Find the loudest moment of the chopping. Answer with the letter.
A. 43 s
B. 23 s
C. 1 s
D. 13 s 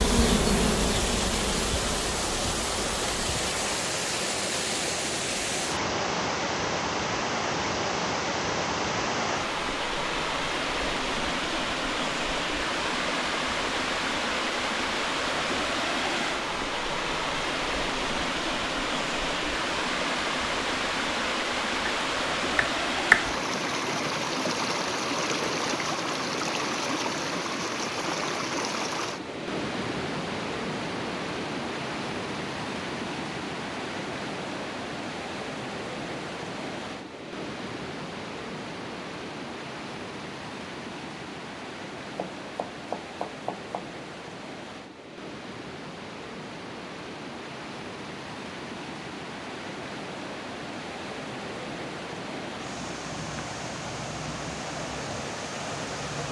B.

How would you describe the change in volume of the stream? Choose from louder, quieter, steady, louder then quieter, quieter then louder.
quieter.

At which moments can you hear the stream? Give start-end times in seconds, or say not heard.
0.0-56.2.